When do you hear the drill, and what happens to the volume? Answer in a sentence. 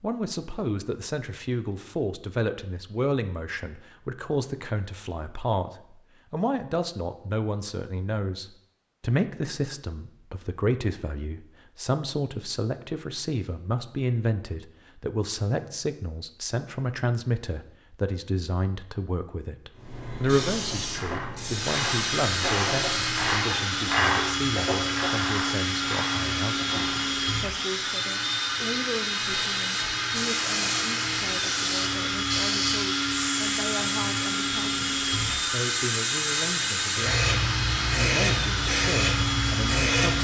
You can hear the drill from 21.4 to 40.1 s, at a steady volume.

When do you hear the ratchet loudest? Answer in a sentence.
The volume of the ratchet peaks at 24 seconds.